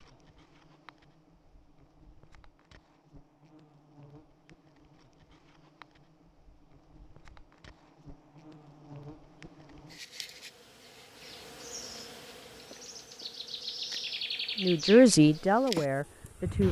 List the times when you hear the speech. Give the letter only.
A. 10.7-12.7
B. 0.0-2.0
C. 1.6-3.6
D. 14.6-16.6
D.